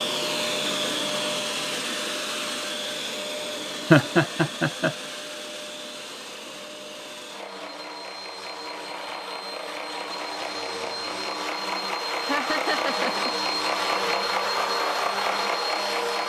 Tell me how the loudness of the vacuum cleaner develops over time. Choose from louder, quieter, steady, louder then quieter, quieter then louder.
quieter then louder.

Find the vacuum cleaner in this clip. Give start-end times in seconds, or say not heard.
0.0-16.2.